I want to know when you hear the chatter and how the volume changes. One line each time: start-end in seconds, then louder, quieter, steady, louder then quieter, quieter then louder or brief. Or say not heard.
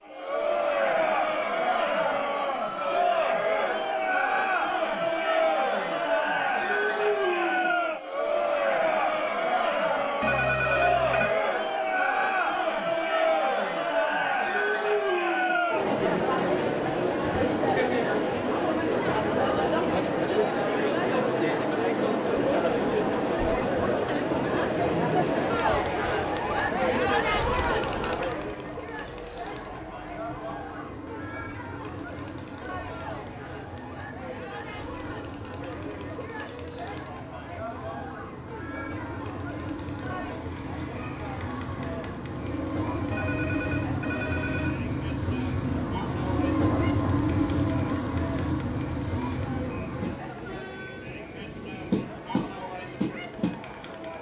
0.1-54.1 quieter.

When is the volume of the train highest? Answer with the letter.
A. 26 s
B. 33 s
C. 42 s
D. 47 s
D.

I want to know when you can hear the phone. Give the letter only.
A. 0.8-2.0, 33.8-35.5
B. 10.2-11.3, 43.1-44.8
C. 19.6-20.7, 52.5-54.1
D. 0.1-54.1
B.